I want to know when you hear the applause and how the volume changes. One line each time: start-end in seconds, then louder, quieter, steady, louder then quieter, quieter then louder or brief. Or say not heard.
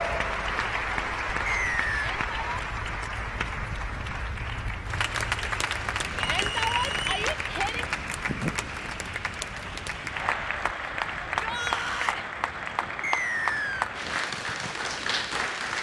0.0-15.7 steady.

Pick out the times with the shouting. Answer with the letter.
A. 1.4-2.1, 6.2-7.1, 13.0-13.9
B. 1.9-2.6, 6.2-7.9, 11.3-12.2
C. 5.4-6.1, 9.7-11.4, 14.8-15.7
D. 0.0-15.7
B.